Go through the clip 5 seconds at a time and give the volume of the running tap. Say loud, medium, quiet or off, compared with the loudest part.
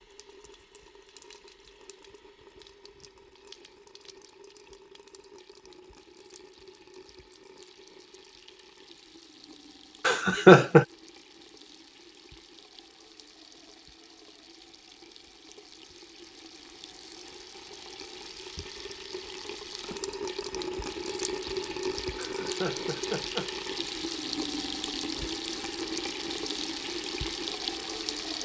quiet, quiet, quiet, medium, loud, loud.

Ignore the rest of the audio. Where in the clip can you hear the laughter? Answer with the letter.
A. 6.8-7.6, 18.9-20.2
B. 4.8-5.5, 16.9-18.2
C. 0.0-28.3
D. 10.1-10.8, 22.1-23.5
D.